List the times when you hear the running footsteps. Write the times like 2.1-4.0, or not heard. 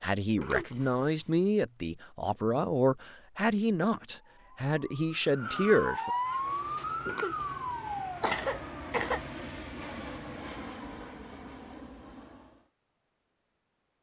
not heard.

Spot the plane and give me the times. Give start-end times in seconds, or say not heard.
6.1-12.7.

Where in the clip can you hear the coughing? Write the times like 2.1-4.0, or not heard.
0.3-1.2, 7.0-9.2.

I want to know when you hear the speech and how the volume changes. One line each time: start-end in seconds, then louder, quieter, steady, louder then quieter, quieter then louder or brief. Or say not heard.
0.0-6.1 steady.